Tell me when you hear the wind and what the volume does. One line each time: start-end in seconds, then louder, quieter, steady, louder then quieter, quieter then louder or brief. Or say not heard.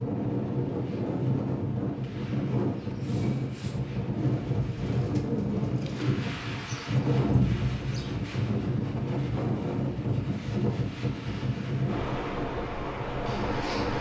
0.0-13.9 steady.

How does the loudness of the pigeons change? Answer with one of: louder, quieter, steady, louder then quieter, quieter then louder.
louder.